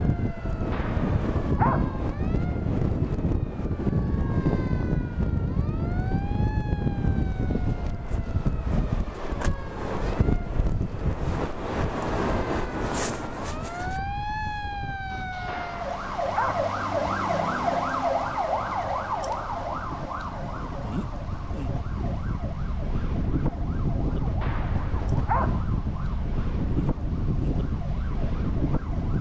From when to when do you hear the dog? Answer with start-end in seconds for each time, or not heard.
0.7-1.9, 15.4-16.7, 24.4-25.6.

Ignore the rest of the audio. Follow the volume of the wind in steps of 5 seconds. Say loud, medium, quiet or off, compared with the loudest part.
loud, loud, loud, quiet, medium, loud.